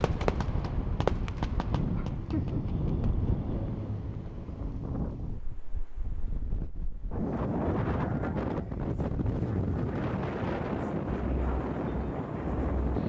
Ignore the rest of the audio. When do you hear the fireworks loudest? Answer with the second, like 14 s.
1 s.